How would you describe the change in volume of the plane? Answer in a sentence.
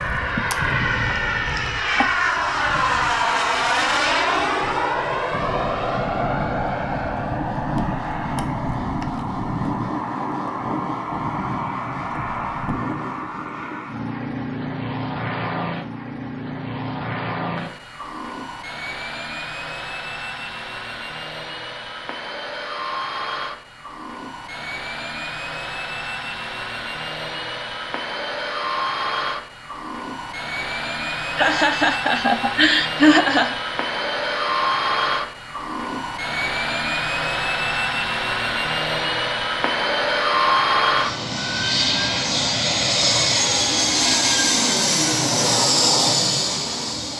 The volume of the plane goes down, then up.